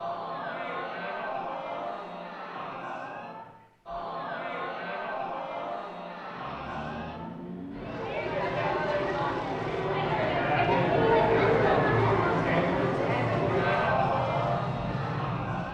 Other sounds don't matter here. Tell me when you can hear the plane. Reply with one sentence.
You can hear the plane from 6.1 to 15.6 s.